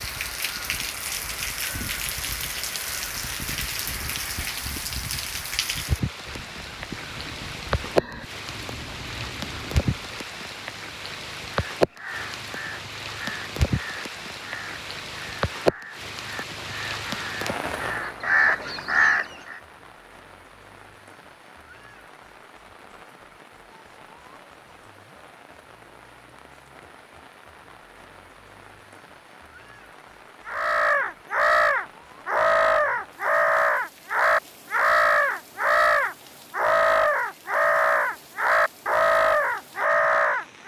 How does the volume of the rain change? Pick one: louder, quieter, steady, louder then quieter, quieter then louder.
quieter.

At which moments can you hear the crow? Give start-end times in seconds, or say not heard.
0.0-10.3, 11.7-19.6, 30.4-40.6.